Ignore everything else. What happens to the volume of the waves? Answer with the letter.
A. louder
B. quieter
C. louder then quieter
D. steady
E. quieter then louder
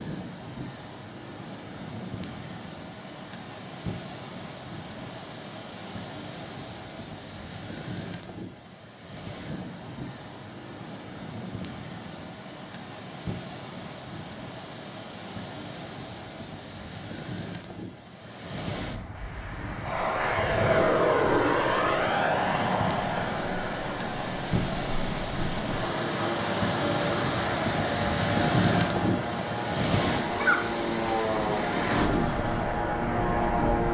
A.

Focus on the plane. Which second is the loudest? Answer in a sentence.
The loudest moment of the plane is at 21 seconds.